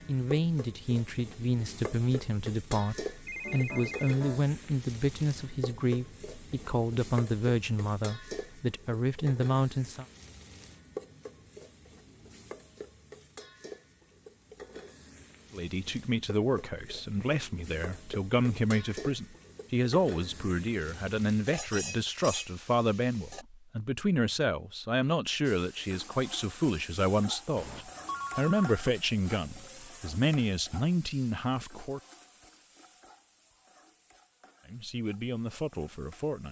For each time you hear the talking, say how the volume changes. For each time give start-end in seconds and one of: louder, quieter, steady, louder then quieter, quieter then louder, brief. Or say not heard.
0.1-10.1 steady
15.5-32.0 steady
34.6-36.4 brief.